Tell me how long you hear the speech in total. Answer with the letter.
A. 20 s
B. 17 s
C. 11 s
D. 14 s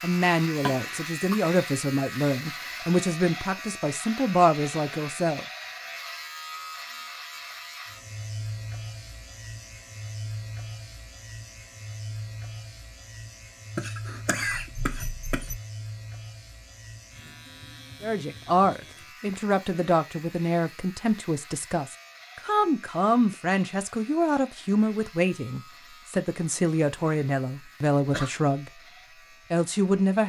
B.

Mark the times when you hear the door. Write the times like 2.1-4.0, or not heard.
not heard.